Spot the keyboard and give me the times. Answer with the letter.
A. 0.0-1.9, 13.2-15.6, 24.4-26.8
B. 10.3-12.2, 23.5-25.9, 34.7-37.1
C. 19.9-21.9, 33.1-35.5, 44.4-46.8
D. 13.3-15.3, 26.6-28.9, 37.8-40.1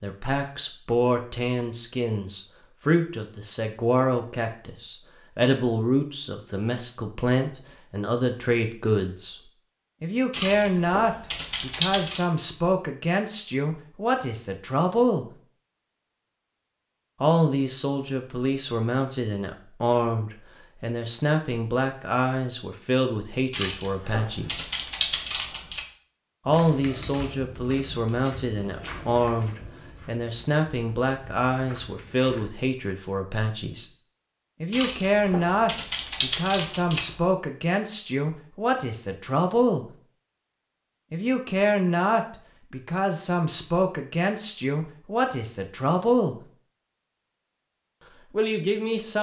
B.